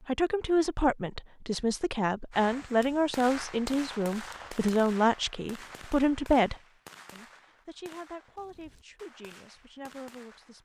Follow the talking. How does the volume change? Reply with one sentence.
The loudness of the talking goes down.